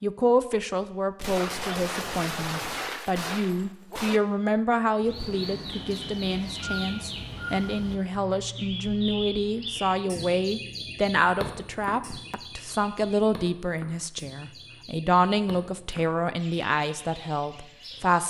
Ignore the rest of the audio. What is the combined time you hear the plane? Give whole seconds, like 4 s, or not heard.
not heard.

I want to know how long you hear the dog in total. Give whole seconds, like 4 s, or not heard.
not heard.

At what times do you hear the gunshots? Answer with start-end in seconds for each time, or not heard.
1.1-4.2.